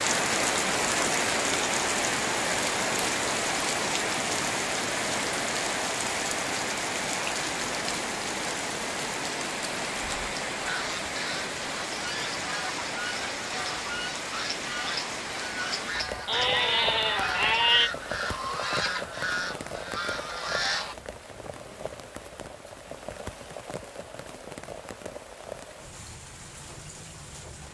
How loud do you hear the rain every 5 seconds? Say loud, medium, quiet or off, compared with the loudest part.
loud, loud, medium, medium, quiet, quiet.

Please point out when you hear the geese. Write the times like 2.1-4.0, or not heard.
10.7-20.9.